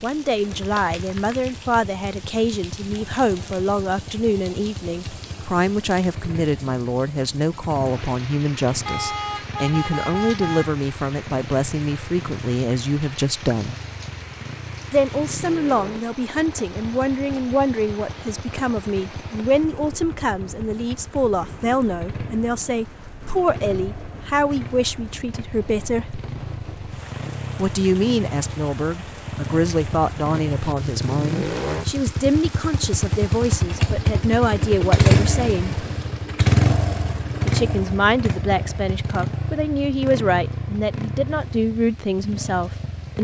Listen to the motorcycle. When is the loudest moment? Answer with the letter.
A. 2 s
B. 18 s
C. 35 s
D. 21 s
C.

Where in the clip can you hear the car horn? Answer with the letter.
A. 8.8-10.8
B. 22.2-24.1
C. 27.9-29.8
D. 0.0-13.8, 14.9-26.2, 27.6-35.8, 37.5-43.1
A.